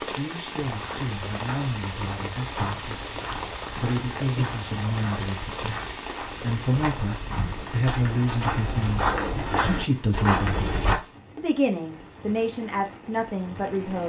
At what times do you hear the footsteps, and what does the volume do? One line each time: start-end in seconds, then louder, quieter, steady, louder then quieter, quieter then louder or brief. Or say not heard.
0.6-10.9 louder.